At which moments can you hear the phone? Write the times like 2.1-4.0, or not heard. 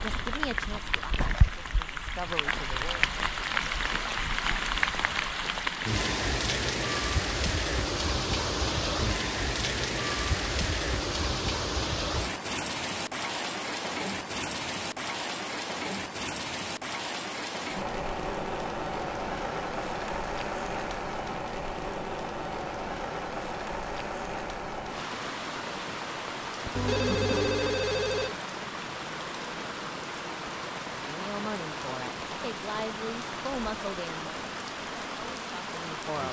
26.8-28.4.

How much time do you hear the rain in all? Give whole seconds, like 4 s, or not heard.
36 s.